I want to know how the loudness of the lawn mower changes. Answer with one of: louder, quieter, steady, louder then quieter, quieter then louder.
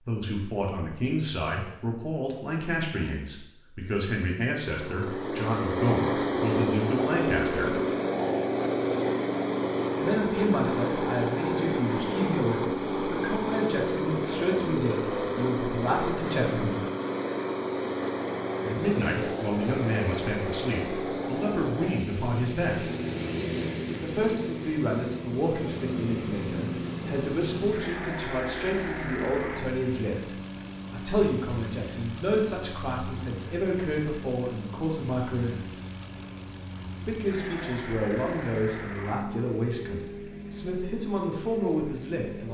quieter.